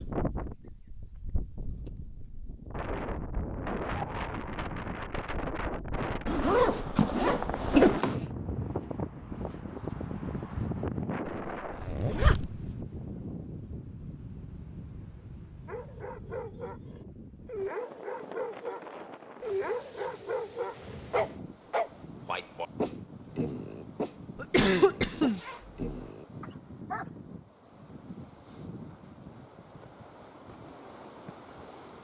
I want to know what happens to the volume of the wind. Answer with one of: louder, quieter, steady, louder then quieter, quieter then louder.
quieter.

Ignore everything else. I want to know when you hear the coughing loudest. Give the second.
25 s.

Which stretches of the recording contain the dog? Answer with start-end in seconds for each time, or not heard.
15.7-27.1.